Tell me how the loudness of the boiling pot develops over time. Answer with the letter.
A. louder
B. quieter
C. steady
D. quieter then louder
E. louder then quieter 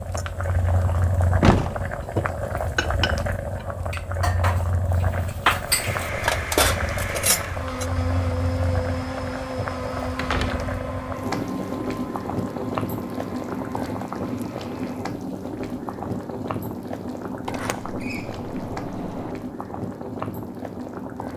C.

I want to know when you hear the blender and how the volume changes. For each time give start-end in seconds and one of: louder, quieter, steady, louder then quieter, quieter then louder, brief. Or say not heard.
5.6-14.9 quieter.